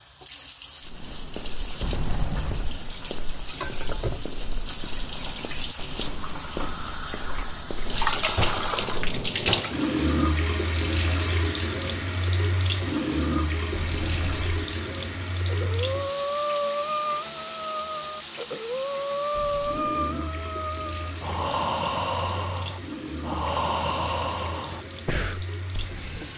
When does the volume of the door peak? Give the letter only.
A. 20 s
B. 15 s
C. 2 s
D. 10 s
C.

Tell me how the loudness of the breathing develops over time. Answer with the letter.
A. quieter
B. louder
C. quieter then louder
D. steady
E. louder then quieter
D.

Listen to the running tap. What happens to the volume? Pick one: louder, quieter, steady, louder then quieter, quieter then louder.
louder then quieter.